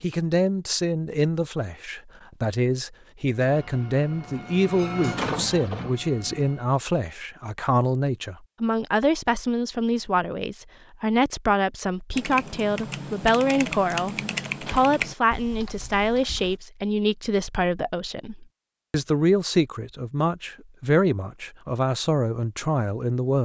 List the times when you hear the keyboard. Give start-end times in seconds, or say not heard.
12.1-16.6.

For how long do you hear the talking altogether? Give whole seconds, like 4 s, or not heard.
23 s.